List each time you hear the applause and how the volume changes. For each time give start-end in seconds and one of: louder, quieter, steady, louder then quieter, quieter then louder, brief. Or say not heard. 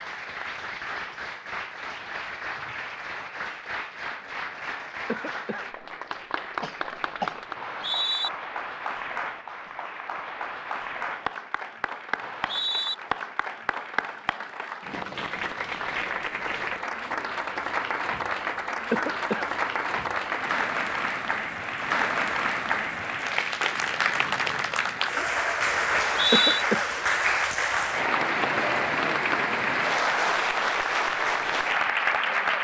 0.0-32.5 louder.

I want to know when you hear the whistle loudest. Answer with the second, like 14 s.
26 s.